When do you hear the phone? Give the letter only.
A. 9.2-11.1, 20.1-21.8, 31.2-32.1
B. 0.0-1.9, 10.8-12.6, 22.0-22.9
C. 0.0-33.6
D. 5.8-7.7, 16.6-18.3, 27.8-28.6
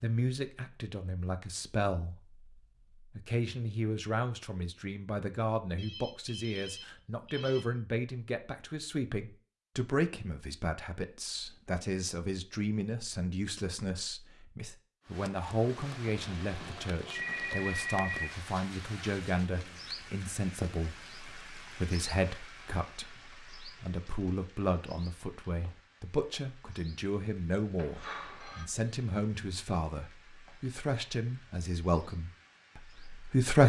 D.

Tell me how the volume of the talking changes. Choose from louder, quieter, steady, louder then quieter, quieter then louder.
steady.